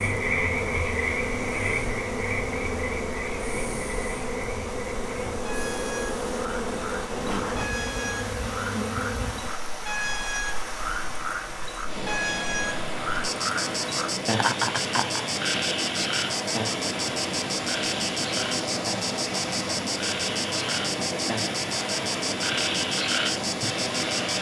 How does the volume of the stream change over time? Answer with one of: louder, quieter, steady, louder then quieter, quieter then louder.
louder.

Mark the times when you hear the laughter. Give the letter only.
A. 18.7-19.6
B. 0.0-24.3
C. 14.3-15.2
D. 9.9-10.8
C.